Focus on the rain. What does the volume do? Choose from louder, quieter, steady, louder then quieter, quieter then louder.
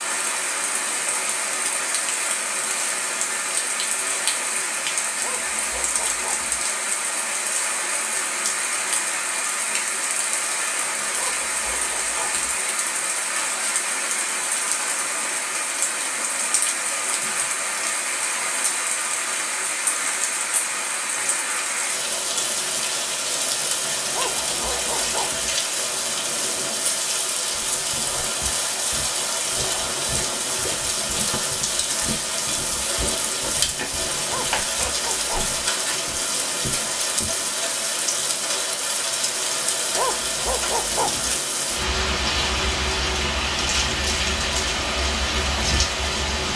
steady.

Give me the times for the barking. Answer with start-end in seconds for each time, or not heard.
5.2-6.7, 11.1-12.6, 24.1-25.6, 34.2-35.5, 40.0-41.4.